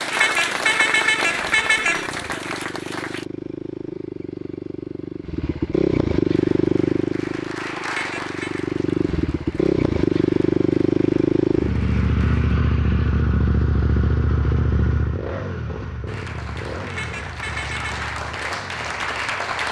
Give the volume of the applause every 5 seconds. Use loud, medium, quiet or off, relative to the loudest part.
loud, medium, quiet, loud.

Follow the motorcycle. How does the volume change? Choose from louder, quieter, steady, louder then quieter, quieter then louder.
louder then quieter.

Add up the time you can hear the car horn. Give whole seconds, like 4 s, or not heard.
4 s.